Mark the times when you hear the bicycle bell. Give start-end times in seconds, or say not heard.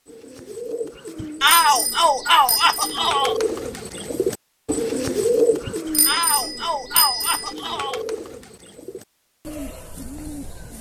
1.1-3.0, 5.7-7.5.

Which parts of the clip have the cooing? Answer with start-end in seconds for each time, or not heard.
0.1-10.7.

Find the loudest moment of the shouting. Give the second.
2 s.